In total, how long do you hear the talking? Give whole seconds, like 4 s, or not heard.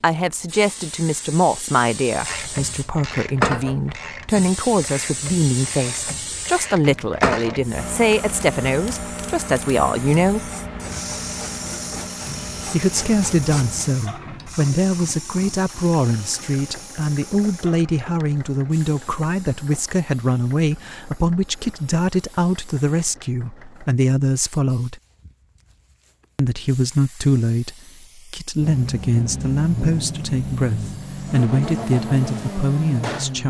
30 s.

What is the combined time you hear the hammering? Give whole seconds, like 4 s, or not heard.
not heard.